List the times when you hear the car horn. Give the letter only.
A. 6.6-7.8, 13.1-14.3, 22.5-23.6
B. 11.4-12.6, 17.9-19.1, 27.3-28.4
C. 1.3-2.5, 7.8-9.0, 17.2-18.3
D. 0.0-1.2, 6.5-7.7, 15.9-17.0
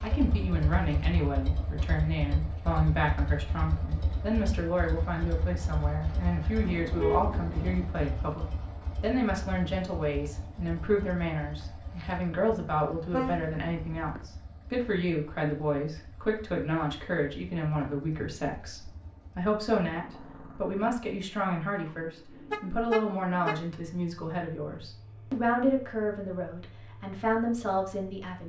A.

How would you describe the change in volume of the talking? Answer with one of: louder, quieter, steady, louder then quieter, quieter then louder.
steady.